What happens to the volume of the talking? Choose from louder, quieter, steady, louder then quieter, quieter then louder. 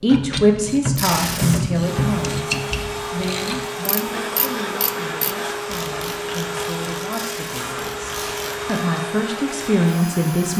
quieter then louder.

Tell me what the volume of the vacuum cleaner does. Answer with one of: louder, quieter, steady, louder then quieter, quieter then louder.
steady.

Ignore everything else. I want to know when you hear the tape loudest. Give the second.
1 s.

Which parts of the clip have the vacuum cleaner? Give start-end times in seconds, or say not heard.
1.8-10.5.